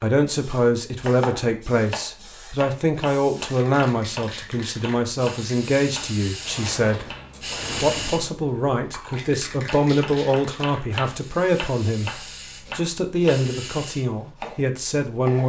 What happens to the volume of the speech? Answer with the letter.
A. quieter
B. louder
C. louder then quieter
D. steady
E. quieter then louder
D.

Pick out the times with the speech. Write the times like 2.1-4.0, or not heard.
0.0-7.2, 7.8-15.4.